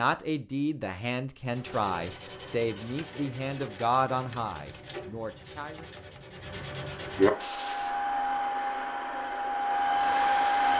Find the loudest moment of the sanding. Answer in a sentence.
The volume of the sanding peaks at 7 seconds.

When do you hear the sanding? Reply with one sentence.
The sanding can be heard from 1.4 to 8.0 s.